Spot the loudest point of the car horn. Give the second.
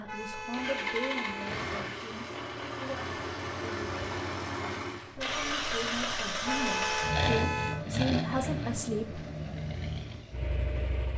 7 s.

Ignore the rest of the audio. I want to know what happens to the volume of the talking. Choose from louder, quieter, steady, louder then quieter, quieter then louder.
quieter then louder.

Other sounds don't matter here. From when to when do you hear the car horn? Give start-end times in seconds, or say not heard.
0.1-1.6, 6.4-7.8.